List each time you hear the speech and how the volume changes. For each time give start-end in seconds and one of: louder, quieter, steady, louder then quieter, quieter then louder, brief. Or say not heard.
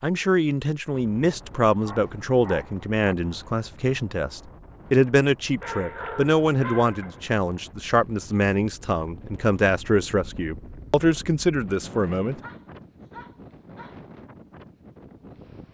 0.0-12.3 steady.